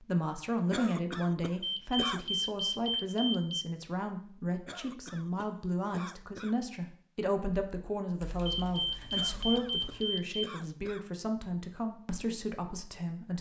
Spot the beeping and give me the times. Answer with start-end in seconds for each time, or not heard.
1.6-3.6, 8.4-10.4.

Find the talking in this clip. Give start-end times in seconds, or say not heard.
0.0-13.3.